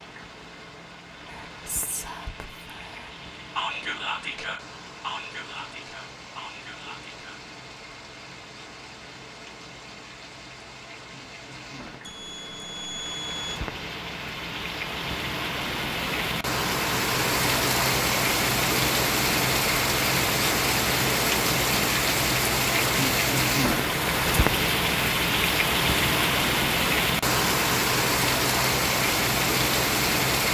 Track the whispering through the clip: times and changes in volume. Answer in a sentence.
You can hear the whispering from 1.2 to 7.4 s, getting louder then quieter.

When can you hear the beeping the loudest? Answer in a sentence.
The loudest moment of the beeping is at 13 seconds.